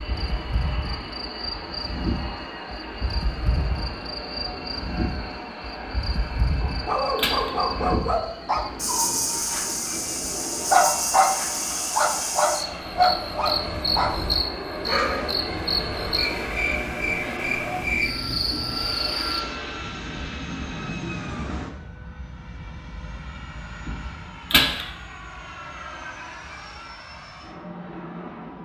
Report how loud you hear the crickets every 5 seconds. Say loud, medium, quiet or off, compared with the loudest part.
medium, loud, loud, loud, off, off.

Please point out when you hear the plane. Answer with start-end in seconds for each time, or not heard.
0.0-28.6.